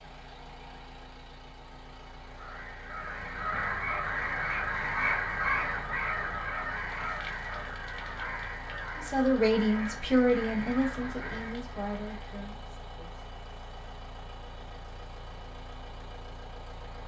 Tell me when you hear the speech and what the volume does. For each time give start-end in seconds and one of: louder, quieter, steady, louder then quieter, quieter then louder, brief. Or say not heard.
8.9-13.2 quieter.